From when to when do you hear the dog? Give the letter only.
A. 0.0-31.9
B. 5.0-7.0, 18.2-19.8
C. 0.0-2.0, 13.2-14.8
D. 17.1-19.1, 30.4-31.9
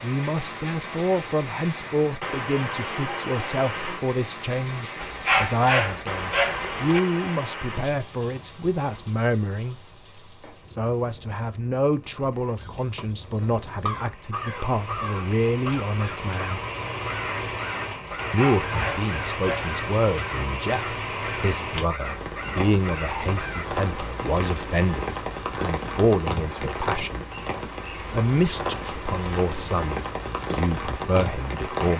B.